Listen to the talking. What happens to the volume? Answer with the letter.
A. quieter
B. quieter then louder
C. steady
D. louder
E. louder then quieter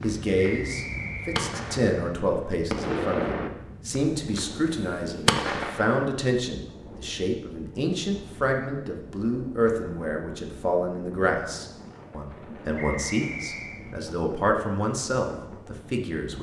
C.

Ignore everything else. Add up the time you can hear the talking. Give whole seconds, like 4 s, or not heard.
16 s.